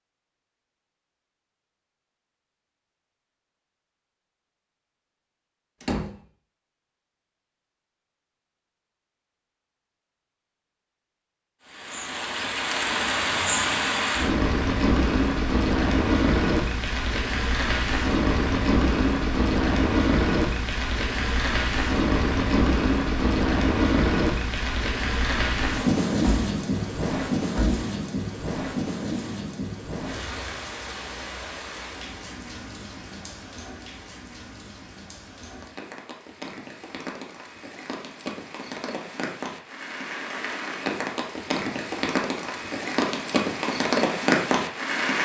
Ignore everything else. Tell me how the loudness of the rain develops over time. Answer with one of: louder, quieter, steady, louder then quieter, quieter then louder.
quieter then louder.